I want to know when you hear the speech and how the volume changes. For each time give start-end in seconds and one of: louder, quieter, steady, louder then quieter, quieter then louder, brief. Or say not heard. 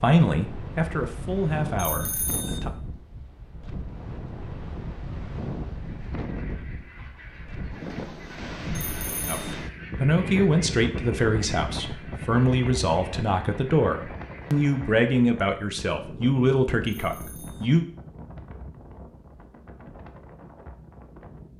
0.0-2.7 brief
9.2-17.9 steady.